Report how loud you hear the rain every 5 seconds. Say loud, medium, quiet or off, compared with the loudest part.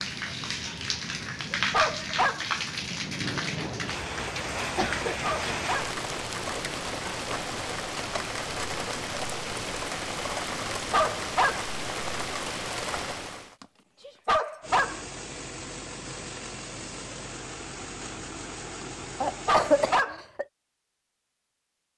loud, loud, loud, off, off.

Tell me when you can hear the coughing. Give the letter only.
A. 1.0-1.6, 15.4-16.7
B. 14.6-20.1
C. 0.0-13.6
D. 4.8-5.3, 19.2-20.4
D.